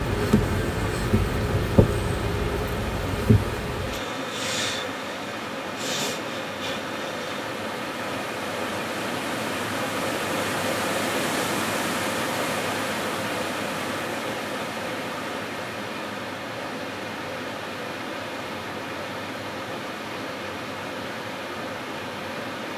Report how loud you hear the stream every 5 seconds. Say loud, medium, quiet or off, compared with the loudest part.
medium, loud, loud, medium, medium.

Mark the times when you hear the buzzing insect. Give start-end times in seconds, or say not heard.
0.0-7.4.